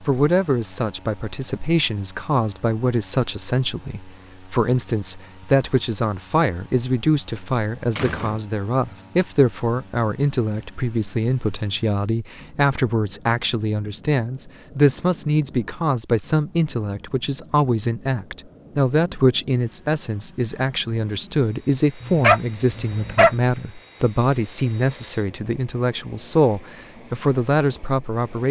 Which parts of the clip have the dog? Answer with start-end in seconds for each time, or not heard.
22.0-23.3.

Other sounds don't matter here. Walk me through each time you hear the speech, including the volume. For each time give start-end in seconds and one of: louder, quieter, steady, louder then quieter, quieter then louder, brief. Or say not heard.
0.0-28.4 steady.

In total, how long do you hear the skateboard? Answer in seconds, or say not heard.
not heard.